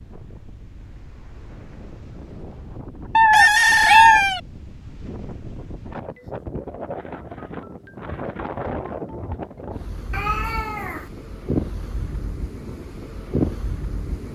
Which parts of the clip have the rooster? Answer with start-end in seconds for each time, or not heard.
3.3-4.4.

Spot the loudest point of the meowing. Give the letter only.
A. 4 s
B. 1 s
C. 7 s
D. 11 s
A.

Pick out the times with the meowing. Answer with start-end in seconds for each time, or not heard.
3.1-4.2, 10.1-11.1.